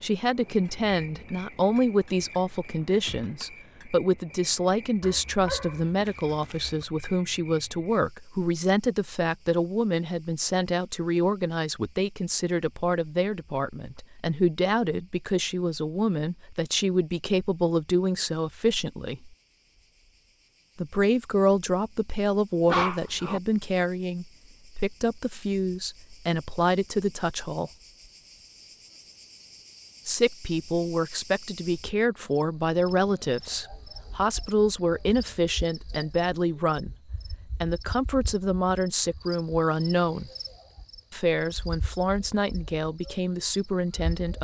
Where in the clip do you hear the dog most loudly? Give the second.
23 s.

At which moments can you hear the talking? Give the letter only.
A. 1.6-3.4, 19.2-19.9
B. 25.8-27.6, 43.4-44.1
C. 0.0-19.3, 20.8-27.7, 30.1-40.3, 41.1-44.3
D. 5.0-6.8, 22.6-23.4
C.